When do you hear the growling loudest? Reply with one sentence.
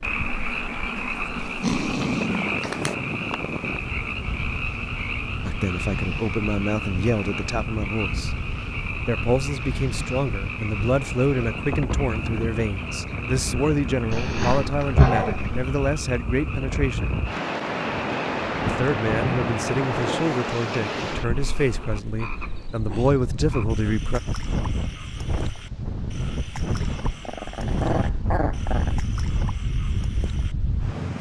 The volume of the growling peaks at 15 seconds.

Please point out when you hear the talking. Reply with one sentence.
You can hear the talking from 5.4 to 8.3 s, from 9.1 to 17.2 s and from 18.6 to 24.2 s.